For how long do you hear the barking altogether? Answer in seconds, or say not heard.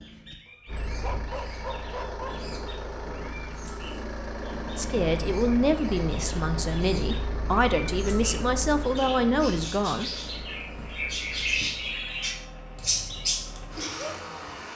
2 s.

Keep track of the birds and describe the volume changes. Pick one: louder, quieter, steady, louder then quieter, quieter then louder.
louder.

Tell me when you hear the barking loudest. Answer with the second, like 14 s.
1 s.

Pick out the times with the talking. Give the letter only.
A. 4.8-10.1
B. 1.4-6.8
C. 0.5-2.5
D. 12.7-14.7
A.